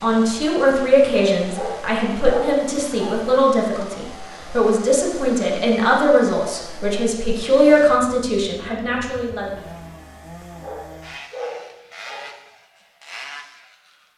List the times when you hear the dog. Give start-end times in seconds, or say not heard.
1.5-3.2, 10.6-12.4.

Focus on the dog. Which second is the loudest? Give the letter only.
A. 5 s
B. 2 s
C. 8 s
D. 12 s
B.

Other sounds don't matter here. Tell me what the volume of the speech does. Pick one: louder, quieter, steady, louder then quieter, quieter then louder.
steady.